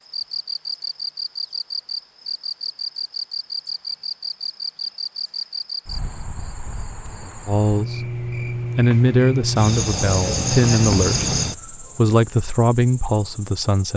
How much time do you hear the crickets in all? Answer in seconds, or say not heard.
14 s.